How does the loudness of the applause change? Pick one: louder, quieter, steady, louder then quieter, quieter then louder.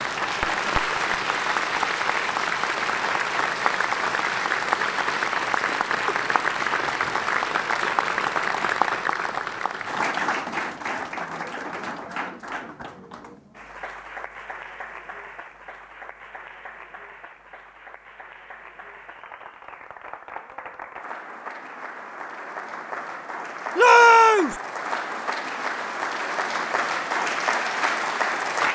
quieter then louder.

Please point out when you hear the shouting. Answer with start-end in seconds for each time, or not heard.
23.8-24.6.